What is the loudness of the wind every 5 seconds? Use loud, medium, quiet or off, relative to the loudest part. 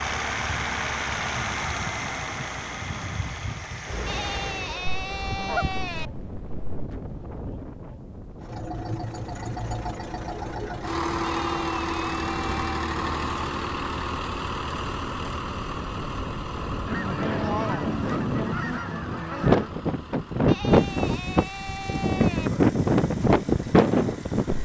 quiet, quiet, quiet, medium, loud.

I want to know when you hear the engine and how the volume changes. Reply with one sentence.
The engine can be heard from 0.0 to 4.8 s, getting quieter; and from 8.4 to 24.5 s, getting quieter.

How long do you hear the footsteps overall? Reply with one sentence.
You can't hear the footsteps here.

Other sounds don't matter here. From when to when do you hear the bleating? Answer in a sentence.
You can hear the bleating from 4.0 to 6.1 s, from 11.2 to 12.8 s and from 20.4 to 22.5 s.